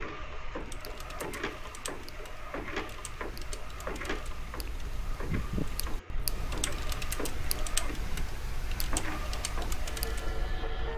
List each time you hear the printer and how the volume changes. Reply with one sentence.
The printer can be heard from 0.0 to 10.9 s, at a steady volume.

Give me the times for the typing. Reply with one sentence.
The typing can be heard from 0.6 to 10.7 s.